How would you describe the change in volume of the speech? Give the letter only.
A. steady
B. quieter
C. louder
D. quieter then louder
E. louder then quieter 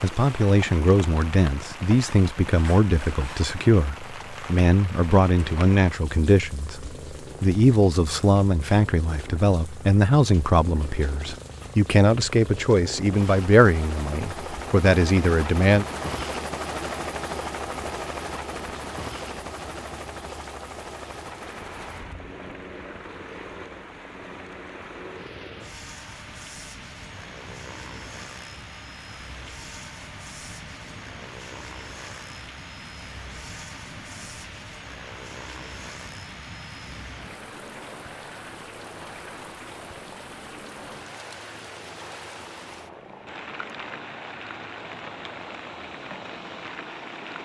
A.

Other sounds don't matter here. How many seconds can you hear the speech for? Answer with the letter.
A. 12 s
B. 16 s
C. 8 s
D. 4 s
B.